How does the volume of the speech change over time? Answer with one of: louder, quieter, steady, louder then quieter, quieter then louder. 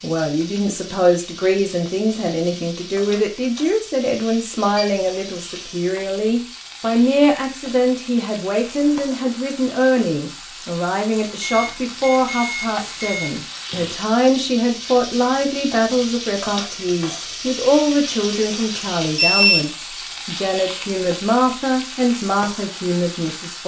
steady.